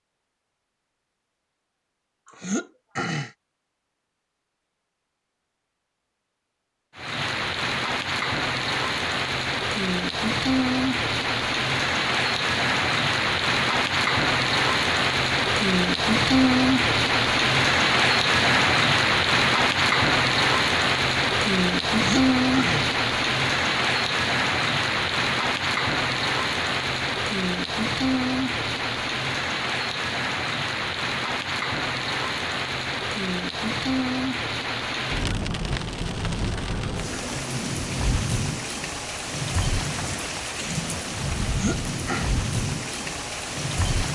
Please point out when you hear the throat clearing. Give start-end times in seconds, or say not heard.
2.3-3.3, 21.9-22.9, 41.4-42.3.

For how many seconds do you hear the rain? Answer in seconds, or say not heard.
37 s.